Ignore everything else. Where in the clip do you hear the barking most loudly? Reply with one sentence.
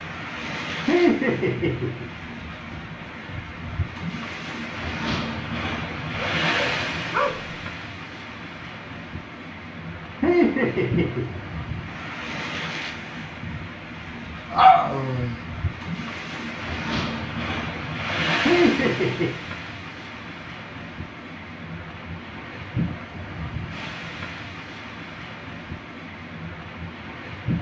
The loudest moment of the barking is at 15 seconds.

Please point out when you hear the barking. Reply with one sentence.
You can hear the barking from 6.3 to 7.6 s and from 14.5 to 15.3 s.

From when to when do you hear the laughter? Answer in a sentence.
The laughter can be heard from 0.8 to 2.1 s, from 10.2 to 11.4 s and from 18.4 to 19.4 s.